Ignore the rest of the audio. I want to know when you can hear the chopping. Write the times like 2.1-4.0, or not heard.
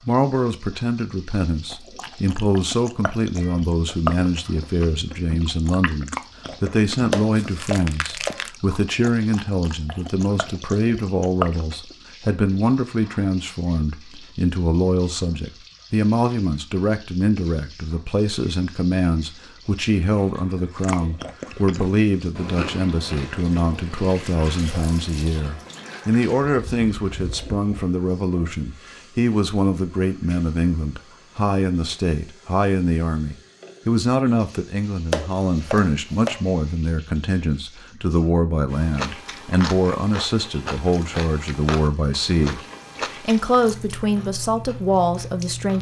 7.1-8.4, 35.1-36.4.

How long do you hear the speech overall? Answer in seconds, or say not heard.
46 s.